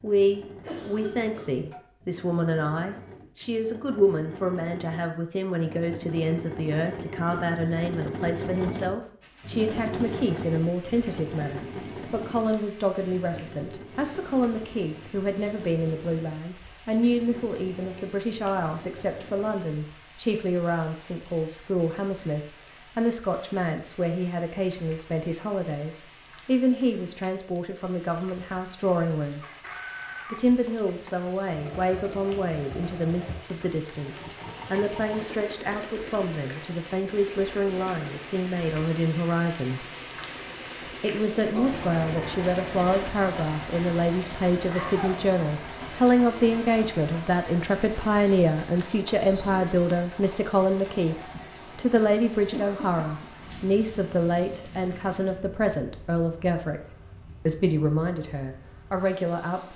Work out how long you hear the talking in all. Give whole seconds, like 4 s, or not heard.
57 s.